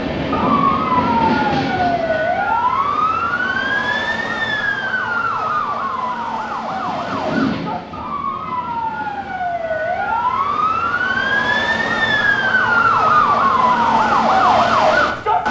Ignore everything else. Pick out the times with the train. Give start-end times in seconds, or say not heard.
0.0-3.8, 6.7-9.3.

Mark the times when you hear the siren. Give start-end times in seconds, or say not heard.
0.1-15.4.